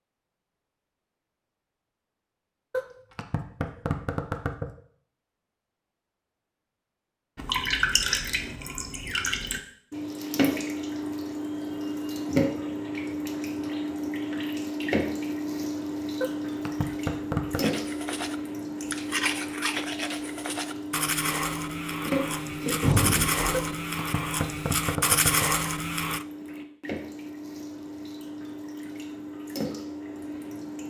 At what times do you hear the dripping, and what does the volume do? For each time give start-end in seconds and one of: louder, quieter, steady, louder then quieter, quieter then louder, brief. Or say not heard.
7.3-30.8 quieter.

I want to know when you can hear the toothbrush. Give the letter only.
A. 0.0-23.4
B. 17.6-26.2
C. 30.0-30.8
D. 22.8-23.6
B.